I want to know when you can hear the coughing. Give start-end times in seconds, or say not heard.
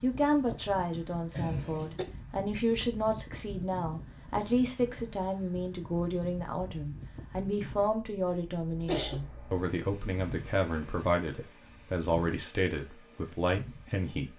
1.4-2.0, 8.2-9.2.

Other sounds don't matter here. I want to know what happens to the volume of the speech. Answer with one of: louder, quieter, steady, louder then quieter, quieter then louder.
steady.